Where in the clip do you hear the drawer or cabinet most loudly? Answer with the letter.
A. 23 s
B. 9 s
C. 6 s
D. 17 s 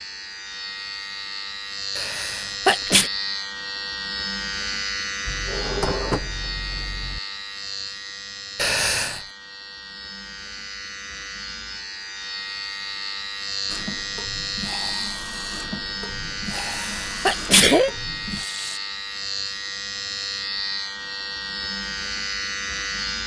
C.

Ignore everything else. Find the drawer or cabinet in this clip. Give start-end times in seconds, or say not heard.
5.2-7.2.